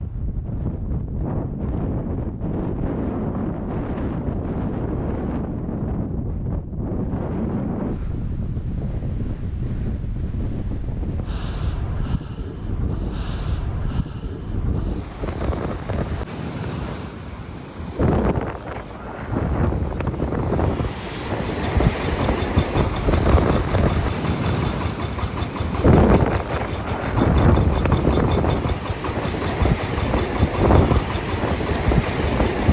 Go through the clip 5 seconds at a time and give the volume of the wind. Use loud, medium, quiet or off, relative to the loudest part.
medium, medium, medium, medium, loud, loud, loud.